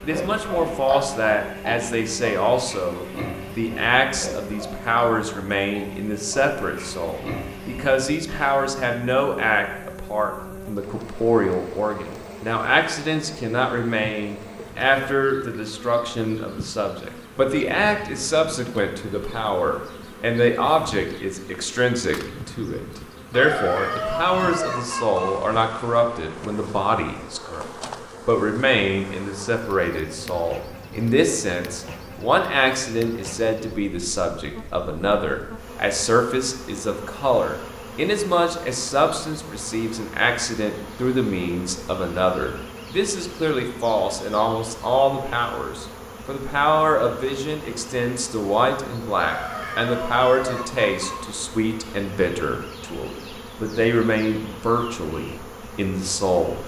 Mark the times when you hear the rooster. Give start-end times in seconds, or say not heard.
23.3-25.4, 49.1-51.2.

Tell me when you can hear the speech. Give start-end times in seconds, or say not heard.
0.0-27.6, 28.2-56.6.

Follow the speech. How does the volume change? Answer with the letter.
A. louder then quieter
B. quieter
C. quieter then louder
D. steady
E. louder
D.